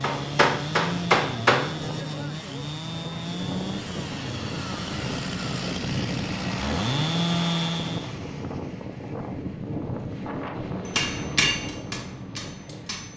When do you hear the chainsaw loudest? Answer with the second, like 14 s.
7 s.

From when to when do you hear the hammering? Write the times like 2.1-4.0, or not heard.
0.0-1.6, 10.8-13.1.